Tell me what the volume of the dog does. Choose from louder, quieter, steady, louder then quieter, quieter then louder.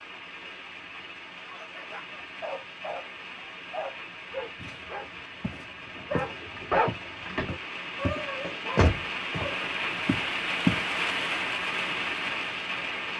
louder then quieter.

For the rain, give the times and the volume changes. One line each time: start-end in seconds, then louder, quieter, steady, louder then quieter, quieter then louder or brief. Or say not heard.
0.0-13.1 louder.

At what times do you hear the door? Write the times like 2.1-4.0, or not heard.
8.4-9.5.